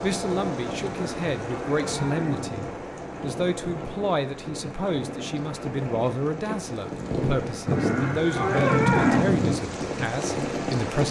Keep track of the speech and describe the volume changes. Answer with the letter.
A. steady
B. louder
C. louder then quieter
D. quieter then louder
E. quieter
A.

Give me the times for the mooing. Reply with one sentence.
The mooing can be heard from 0.8 to 2.7 s and from 7.7 to 9.6 s.